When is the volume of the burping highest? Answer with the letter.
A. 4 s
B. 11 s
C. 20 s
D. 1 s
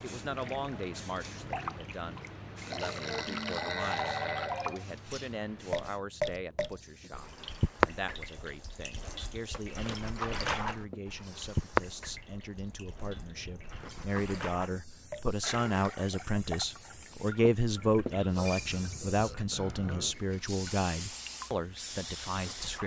A.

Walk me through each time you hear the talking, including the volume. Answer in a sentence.
The talking can be heard from 0.0 to 22.8 s, getting louder.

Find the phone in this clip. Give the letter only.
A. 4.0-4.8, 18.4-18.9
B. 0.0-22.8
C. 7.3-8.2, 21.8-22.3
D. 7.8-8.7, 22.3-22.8
A.